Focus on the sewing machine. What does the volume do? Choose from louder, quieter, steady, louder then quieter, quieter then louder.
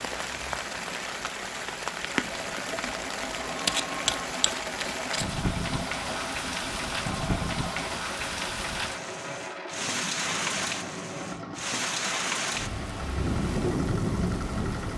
steady.